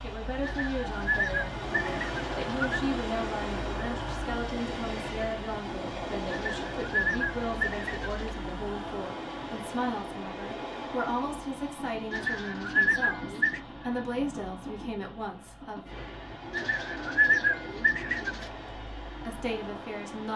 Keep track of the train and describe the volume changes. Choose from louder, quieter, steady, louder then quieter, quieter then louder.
quieter.